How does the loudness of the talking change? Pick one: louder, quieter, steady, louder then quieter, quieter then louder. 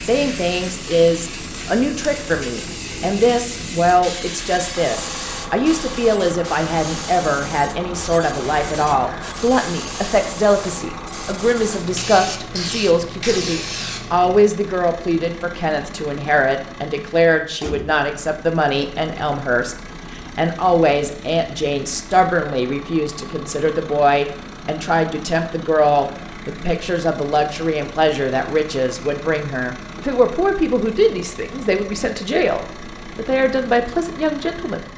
steady.